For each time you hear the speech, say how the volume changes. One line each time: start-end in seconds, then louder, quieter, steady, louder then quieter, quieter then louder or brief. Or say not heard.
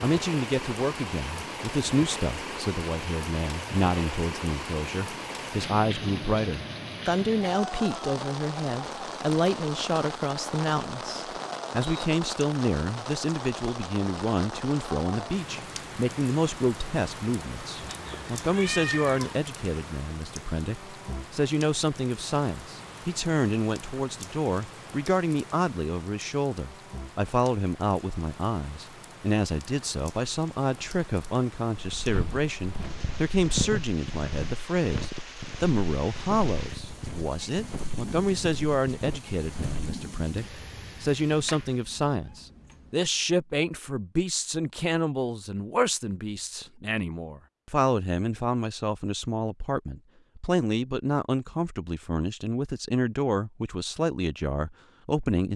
0.0-55.5 steady.